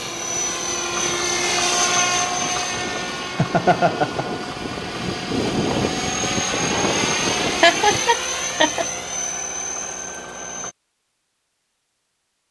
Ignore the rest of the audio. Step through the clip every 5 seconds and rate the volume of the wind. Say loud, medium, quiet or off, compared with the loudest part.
medium, loud, off.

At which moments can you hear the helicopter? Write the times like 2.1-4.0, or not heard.
0.0-10.8.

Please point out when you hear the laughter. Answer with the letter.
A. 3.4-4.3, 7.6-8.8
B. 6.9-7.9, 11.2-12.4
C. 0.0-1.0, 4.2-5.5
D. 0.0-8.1
A.